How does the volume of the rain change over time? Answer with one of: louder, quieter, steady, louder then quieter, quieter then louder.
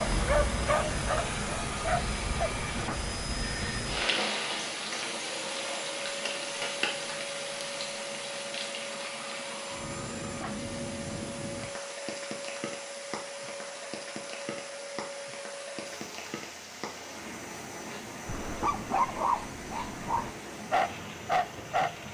quieter.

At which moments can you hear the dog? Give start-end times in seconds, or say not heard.
0.0-2.5, 18.2-21.9.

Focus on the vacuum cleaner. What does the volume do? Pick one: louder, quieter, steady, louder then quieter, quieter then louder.
quieter.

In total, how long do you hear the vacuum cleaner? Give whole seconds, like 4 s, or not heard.
22 s.